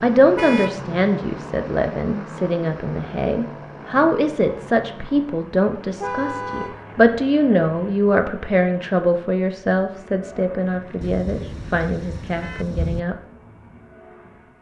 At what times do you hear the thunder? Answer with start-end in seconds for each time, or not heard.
11.0-13.0.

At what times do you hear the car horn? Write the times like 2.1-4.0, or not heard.
0.3-0.8, 6.0-6.8, 10.6-12.7.